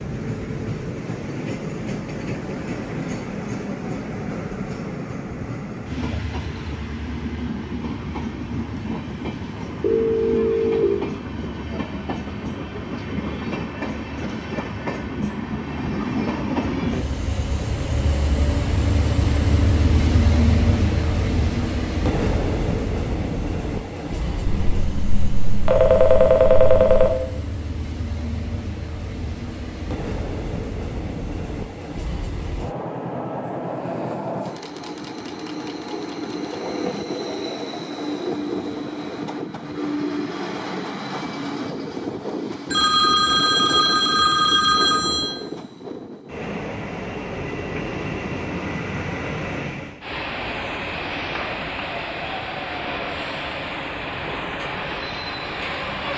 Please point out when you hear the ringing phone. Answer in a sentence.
You can hear the ringing phone from 9.8 to 10.8 s, from 24.4 to 27.1 s and from 42.7 to 45.4 s.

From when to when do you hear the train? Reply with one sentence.
You can hear the train from 0.0 to 56.1 s.